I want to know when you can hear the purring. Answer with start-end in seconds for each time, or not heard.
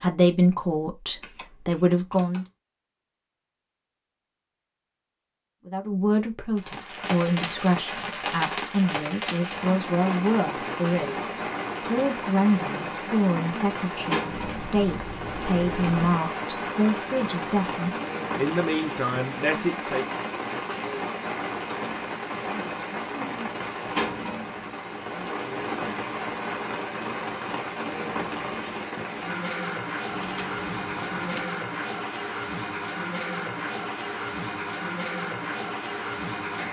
not heard.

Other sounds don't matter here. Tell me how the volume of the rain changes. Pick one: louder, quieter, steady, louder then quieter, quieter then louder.
steady.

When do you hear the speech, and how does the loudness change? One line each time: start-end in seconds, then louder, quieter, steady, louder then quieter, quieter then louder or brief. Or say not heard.
0.0-2.5 brief
5.7-20.2 steady.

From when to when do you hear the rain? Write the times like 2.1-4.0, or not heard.
6.5-36.6.